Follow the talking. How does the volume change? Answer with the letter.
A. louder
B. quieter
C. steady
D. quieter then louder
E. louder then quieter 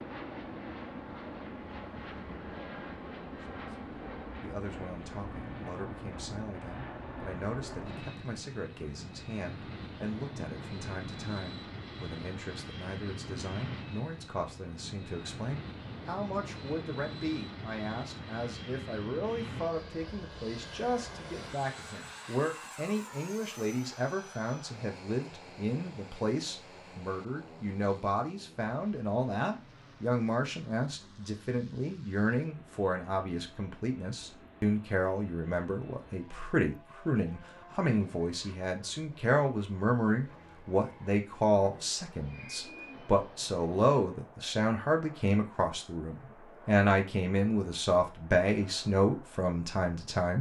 A.